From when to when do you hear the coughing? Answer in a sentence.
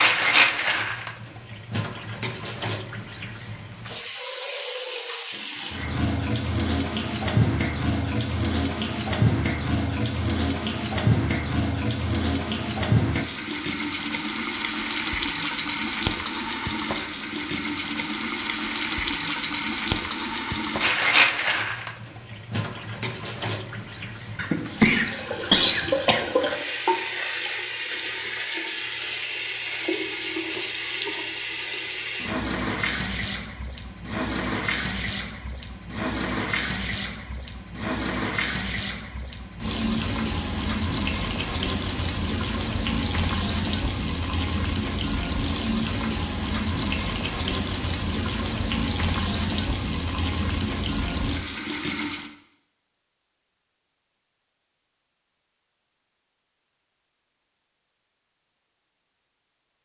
You can hear the coughing from 24.4 to 26.2 s.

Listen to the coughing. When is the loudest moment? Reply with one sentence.
The loudest moment of the coughing is at 26 seconds.